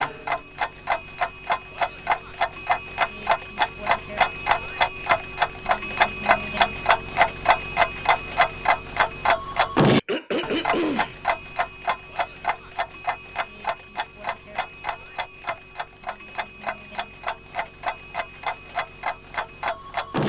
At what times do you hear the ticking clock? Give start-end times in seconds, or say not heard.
0.0-20.2.